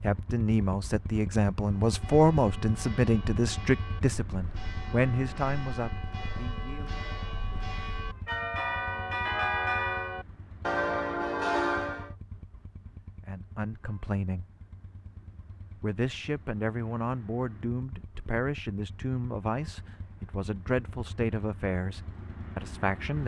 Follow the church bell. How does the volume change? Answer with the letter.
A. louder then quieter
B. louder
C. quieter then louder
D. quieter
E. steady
B.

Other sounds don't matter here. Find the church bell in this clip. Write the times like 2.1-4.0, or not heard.
1.6-12.2.